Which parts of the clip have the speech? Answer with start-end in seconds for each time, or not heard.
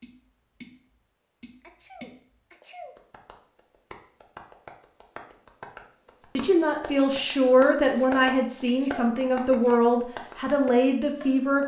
6.3-11.6.